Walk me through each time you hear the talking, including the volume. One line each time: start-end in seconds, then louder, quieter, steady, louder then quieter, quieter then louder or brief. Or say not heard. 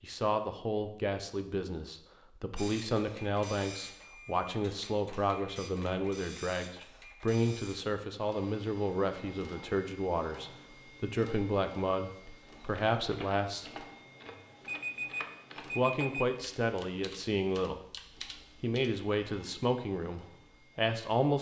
0.0-13.8 steady
15.8-17.8 brief
18.6-21.3 brief.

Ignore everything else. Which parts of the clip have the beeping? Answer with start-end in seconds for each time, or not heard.
14.2-16.2.